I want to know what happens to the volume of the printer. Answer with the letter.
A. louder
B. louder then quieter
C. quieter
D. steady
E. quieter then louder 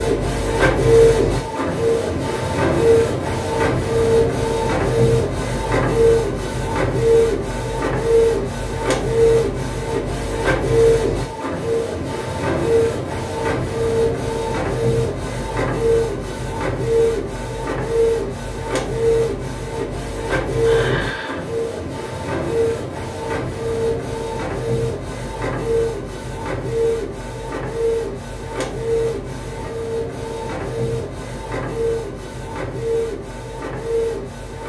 C.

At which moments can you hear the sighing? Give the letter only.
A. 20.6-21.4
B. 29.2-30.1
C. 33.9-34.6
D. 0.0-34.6
A.